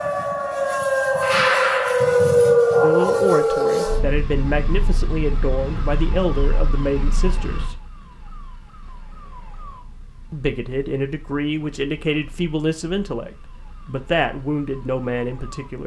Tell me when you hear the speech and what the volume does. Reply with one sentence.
The speech can be heard from 2.8 to 7.8 s, at a steady volume; and from 10.3 to 15.8 s, at a steady volume.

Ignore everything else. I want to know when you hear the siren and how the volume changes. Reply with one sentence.
You can hear the siren from 0.0 to 15.8 s, getting quieter.